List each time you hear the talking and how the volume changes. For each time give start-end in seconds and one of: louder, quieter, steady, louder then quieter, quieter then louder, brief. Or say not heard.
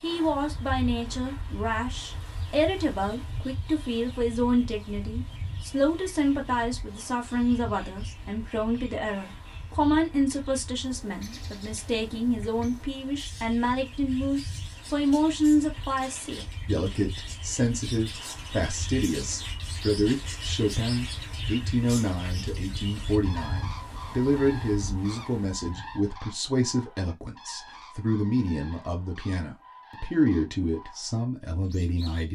0.0-32.3 steady.